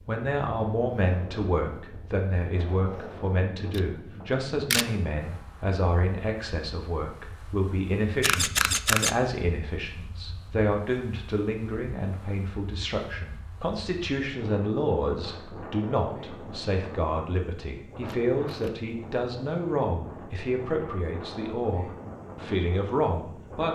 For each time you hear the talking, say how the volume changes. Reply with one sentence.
The talking can be heard from 0.1 to 23.6 s, at a steady volume.